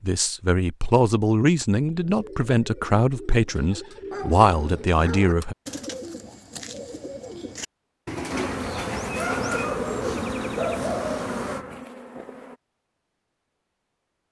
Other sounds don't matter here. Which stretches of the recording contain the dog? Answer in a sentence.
You can hear the dog from 4.1 to 5.3 s and from 9.2 to 11.4 s.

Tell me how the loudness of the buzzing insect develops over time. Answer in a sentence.
The loudness of the buzzing insect goes down.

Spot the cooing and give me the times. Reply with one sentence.
The cooing can be heard from 2.0 to 10.7 s.